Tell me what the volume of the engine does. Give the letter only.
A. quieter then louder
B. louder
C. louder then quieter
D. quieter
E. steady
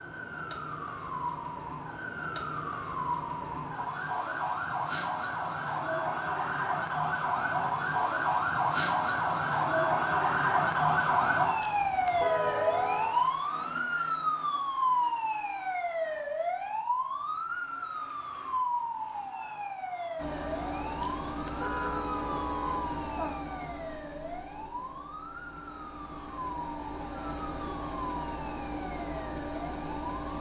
A.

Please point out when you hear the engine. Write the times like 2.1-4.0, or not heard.
20.1-30.3.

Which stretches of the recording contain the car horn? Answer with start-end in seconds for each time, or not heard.
11.6-13.2, 21.0-23.4.